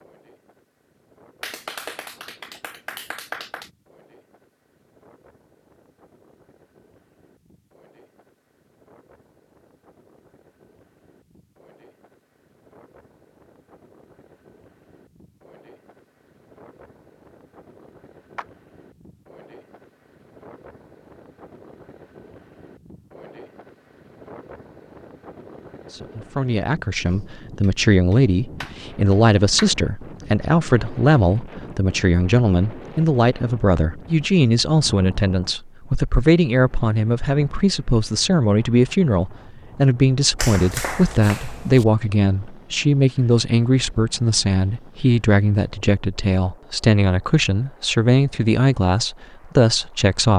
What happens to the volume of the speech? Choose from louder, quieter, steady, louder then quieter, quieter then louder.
steady.